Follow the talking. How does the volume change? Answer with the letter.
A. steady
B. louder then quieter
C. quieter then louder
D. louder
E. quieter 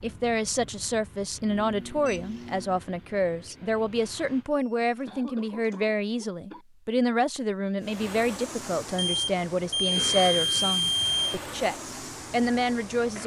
A.